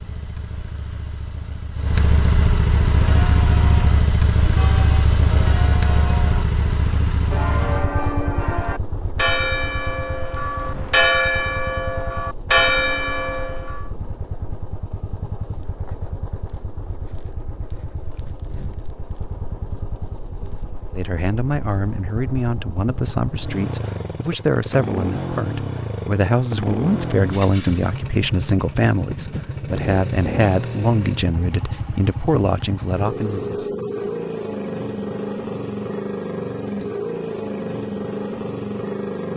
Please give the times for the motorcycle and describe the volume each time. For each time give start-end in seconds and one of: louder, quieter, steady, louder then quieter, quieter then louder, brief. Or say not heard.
0.0-39.3 quieter then louder.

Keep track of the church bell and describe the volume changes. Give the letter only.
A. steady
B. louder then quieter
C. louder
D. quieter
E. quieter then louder
C.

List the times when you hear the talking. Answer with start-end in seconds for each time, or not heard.
20.9-34.1.